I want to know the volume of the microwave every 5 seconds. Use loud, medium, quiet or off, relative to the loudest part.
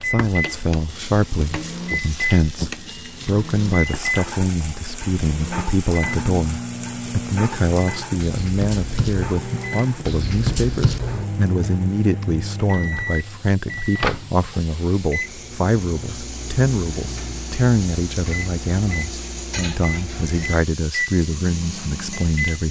loud, loud, loud, medium, loud.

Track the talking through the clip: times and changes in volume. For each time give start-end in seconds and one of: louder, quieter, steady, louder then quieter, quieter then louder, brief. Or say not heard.
0.0-22.6 steady.